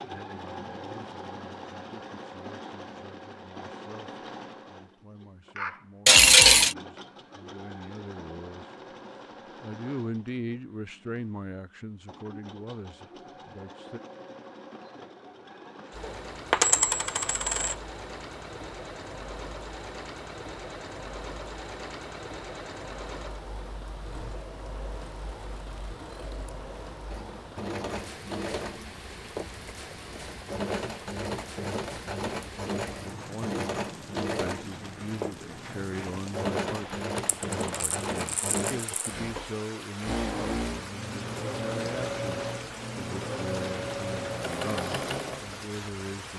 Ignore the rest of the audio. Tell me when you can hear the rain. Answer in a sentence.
The rain can be heard from 15.9 to 46.3 s.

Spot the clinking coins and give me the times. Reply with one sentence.
You can hear the clinking coins from 6.0 to 6.8 s, from 16.1 to 17.8 s and from 37.1 to 39.0 s.